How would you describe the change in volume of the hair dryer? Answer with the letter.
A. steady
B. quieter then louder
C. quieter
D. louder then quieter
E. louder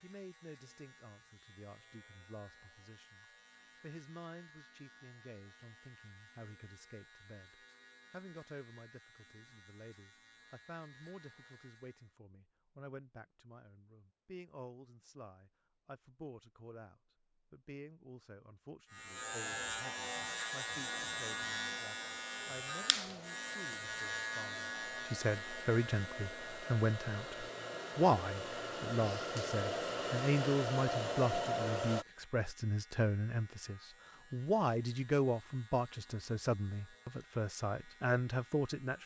E.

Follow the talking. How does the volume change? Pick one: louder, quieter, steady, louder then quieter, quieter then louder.
louder.